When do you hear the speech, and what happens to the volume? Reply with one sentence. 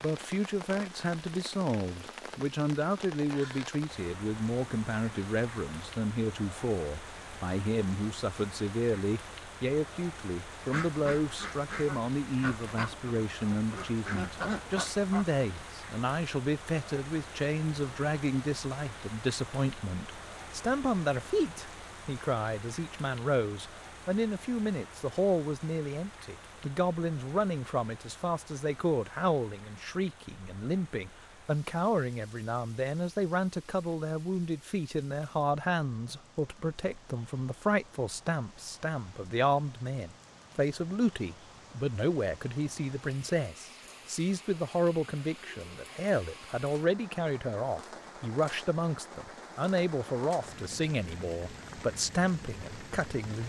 The speech can be heard from 0.0 to 53.4 s, at a steady volume.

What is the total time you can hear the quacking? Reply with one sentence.
You can hear the quacking for 5 seconds altogether.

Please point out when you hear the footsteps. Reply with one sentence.
You can't hear the footsteps here.